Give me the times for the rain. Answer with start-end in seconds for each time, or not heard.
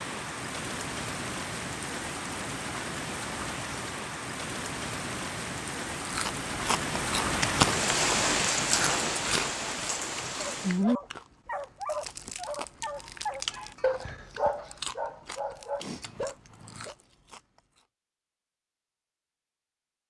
0.0-10.8.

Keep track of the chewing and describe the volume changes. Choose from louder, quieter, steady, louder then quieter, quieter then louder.
quieter.